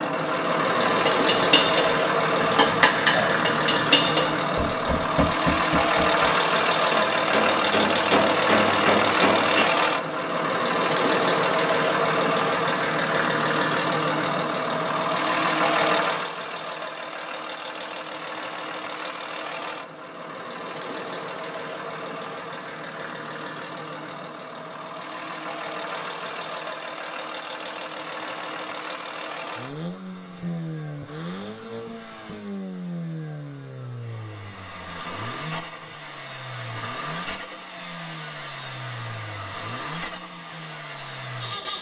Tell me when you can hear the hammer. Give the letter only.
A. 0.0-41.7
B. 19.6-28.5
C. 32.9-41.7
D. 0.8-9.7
D.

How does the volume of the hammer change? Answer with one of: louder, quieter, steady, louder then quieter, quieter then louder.
quieter then louder.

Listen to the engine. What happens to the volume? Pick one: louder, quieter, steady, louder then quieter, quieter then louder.
quieter.